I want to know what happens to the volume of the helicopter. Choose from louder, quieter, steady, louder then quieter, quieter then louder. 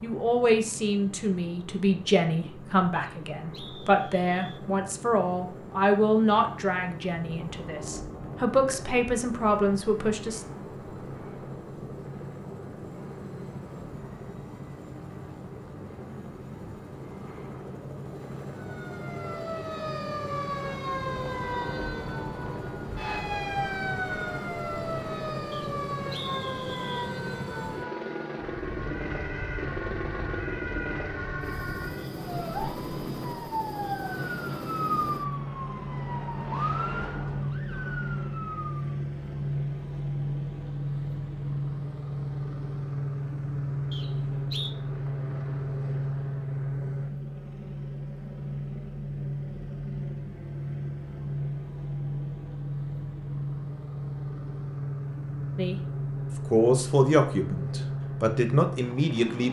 louder.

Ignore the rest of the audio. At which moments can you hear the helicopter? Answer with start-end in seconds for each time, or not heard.
0.0-59.4.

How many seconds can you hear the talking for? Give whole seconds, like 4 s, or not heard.
14 s.